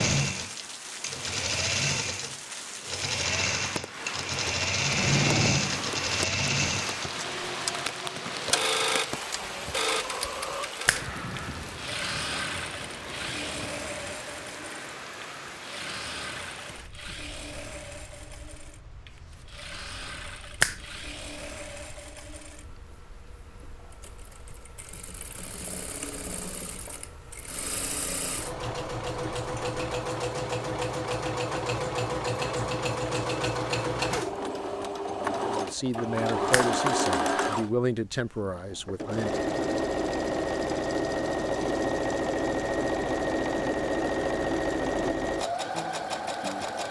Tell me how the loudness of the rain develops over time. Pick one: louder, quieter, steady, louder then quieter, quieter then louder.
quieter.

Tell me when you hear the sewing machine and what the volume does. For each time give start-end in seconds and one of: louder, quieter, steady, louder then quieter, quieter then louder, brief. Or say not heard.
0.0-46.8 quieter then louder.